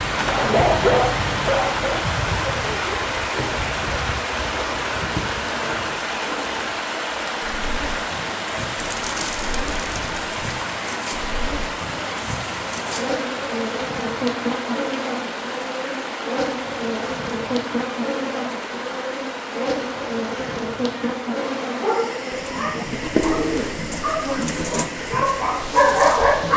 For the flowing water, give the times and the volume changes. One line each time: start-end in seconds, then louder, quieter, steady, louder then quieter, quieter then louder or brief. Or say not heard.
0.0-26.5 quieter.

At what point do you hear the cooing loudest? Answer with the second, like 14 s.
23 s.